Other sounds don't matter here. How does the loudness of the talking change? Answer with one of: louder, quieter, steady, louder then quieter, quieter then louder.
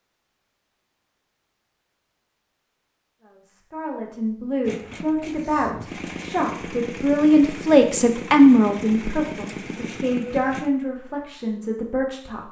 louder then quieter.